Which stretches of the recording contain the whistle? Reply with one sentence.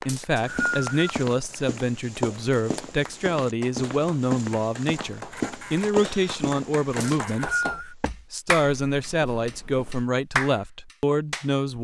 The whistle can be heard from 0.1 to 1.1 s and from 7.0 to 8.0 s.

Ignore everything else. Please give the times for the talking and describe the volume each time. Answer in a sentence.
The talking can be heard from 0.1 to 11.7 s, at a steady volume.